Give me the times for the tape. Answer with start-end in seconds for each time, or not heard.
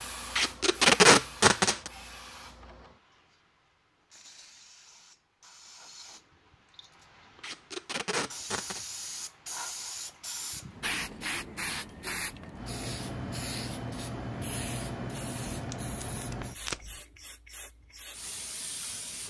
0.3-1.9, 7.4-8.8, 15.5-17.0.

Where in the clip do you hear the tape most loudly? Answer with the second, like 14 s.
1 s.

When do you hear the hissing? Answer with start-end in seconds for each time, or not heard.
0.0-19.2.